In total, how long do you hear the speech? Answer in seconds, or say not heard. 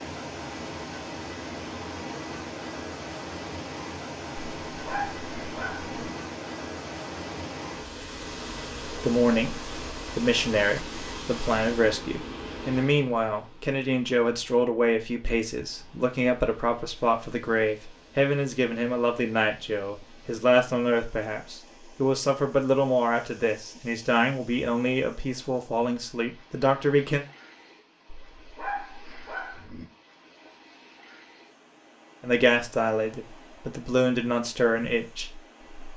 22 s.